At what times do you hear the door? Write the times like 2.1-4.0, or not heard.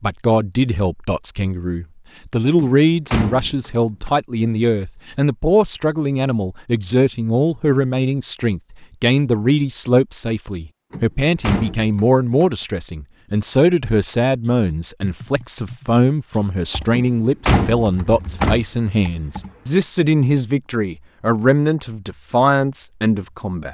2.5-4.1, 10.9-12.4, 16.9-18.6.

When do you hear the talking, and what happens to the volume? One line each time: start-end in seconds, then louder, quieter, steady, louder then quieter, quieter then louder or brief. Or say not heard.
0.0-23.6 steady.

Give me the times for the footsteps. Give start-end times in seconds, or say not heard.
not heard.